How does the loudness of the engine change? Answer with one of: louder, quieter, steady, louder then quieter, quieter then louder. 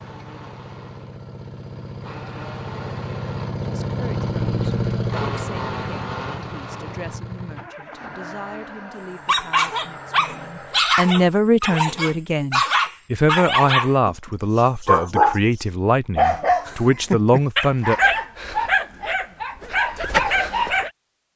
louder then quieter.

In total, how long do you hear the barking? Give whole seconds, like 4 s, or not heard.
11 s.